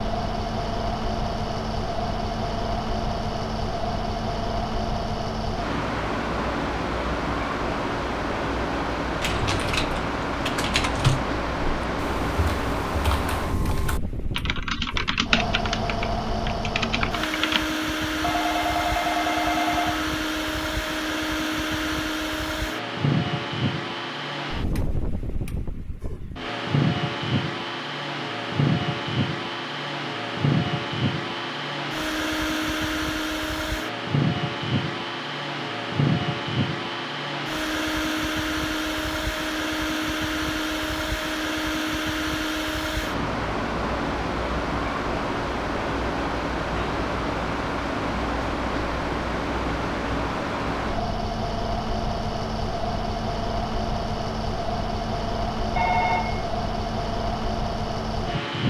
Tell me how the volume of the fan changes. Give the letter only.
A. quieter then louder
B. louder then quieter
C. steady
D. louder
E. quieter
C.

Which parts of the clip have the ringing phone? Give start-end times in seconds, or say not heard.
18.2-20.1, 55.8-56.5.